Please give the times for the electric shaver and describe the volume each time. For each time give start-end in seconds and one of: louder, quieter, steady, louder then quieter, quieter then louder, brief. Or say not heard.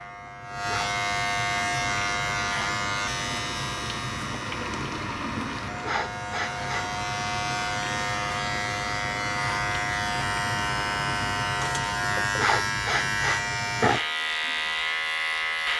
0.0-15.7 quieter then louder.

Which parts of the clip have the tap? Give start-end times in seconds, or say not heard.
1.6-12.2.